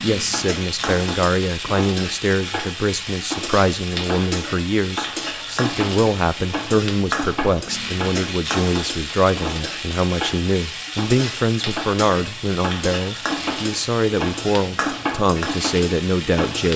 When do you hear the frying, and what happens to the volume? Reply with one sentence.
The frying can be heard from 0.0 to 16.7 s, at a steady volume.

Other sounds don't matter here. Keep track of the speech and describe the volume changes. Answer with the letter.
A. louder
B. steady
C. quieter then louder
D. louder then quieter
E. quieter
B.